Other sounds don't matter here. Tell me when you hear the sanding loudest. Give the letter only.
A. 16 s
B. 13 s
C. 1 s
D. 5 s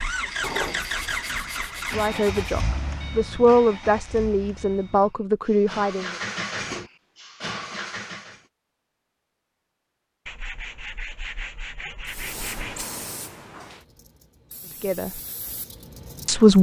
C.